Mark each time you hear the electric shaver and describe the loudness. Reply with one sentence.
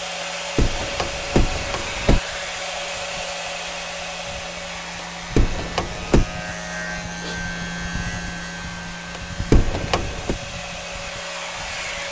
The electric shaver can be heard from 0.0 to 12.0 s, getting louder then quieter.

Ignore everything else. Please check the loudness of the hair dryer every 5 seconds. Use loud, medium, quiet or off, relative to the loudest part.
loud, medium, loud.